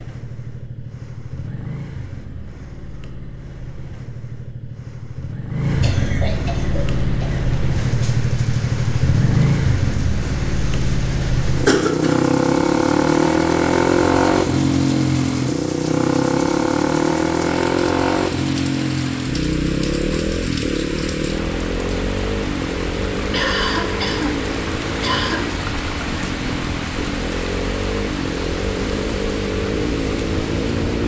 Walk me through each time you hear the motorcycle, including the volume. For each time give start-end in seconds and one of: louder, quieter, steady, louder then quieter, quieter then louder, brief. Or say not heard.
0.0-31.0 louder then quieter.